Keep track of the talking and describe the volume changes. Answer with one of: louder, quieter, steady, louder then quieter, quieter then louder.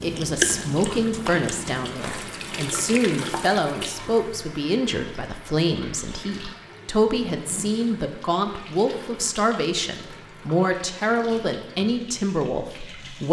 steady.